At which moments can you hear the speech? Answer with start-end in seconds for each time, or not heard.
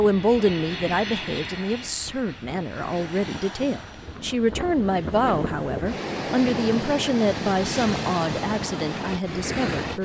0.0-10.0.